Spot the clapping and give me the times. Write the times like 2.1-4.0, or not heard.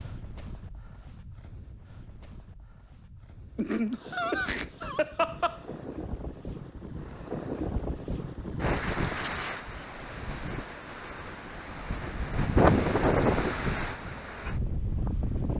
not heard.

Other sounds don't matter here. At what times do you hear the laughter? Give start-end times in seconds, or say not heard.
3.5-5.6.